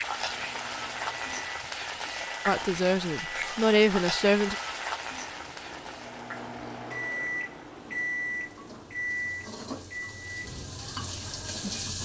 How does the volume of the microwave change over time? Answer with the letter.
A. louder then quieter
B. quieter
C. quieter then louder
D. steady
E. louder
A.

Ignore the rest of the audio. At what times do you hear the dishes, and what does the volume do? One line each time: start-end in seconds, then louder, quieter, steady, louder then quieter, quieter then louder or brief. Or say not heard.
not heard.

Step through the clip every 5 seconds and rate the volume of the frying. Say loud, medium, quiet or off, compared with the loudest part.
loud, medium, loud.